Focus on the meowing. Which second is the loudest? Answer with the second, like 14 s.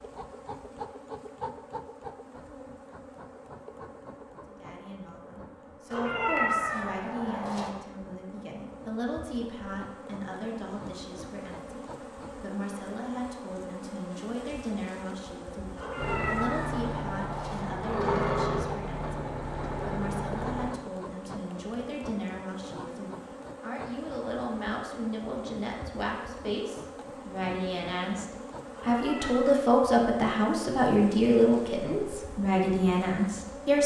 6 s.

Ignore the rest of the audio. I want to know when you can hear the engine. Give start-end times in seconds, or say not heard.
15.9-20.8.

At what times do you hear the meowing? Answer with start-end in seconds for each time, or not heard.
5.9-7.7, 15.8-18.5, 28.7-29.6.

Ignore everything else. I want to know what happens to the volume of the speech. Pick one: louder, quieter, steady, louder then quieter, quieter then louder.
louder.